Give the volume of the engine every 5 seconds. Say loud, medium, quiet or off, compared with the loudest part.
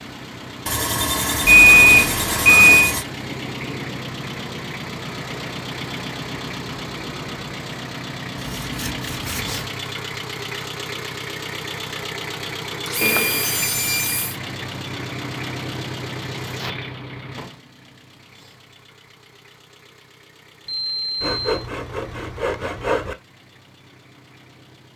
loud, loud, loud, loud, quiet.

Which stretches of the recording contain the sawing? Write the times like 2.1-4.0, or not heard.
0.7-3.0, 8.4-9.7, 12.8-14.4, 21.2-23.1.